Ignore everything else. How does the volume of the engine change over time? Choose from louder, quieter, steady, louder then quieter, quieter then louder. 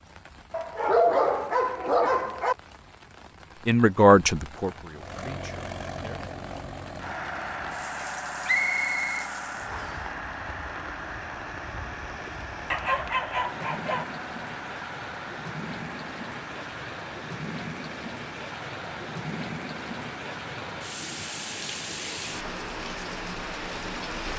quieter.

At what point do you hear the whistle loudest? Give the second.
9 s.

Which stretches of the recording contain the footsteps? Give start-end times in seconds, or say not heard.
not heard.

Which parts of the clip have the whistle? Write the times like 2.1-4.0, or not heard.
8.4-10.1.